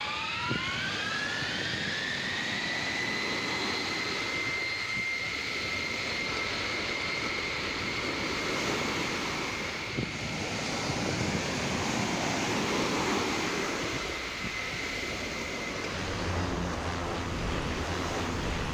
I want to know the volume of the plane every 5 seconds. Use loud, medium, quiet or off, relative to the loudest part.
loud, loud, medium, loud.